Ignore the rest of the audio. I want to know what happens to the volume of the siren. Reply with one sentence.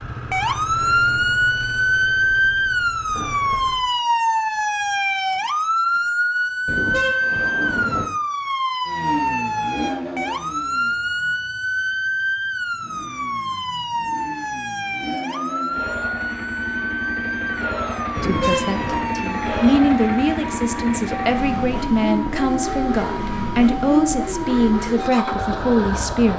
The volume of the siren goes down.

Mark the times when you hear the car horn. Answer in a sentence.
The car horn can be heard from 6.7 to 8.1 s and from 18.1 to 19.1 s.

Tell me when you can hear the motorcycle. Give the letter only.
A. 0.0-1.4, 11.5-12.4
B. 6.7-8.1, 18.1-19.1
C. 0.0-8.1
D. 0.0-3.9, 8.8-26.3
D.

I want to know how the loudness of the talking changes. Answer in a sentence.
The volume of the talking stays about the same.